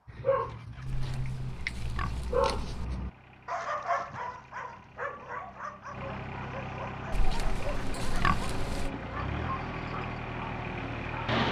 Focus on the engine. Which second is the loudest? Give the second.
11 s.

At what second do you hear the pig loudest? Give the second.
8 s.